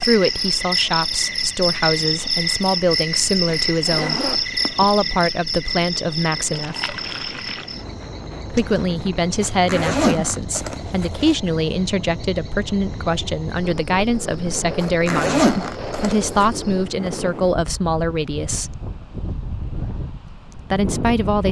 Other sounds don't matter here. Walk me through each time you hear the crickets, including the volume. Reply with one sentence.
The crickets can be heard from 0.0 to 16.9 s, getting quieter.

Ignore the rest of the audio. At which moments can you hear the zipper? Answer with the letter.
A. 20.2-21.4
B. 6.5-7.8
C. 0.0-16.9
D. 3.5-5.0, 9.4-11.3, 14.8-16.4
D.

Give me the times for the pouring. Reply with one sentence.
The pouring can be heard from 6.5 to 7.8 s.